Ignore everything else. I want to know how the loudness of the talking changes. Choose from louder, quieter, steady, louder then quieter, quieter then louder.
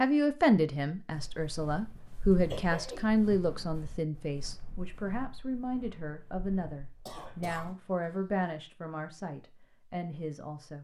quieter.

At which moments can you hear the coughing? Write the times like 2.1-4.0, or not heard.
2.5-3.0, 7.0-8.4.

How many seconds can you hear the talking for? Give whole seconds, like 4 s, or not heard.
11 s.